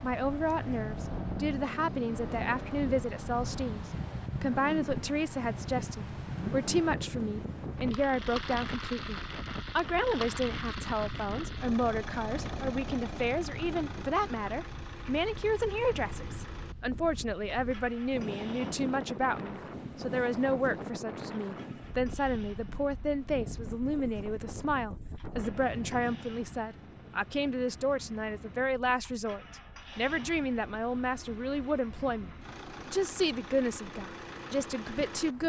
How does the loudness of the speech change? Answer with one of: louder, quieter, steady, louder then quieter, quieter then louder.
steady.